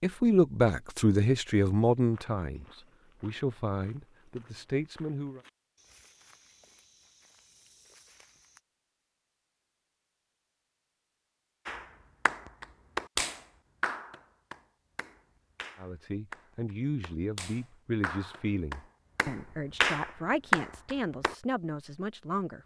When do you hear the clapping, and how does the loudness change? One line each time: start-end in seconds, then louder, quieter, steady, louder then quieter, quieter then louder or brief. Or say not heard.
11.7-21.4 quieter then louder.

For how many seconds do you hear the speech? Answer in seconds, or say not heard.
12 s.